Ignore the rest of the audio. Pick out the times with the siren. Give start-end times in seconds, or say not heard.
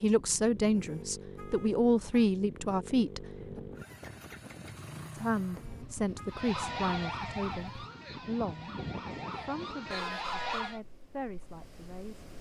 6.3-10.8.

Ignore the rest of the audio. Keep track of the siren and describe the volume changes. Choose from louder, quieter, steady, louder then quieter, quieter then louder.
quieter then louder.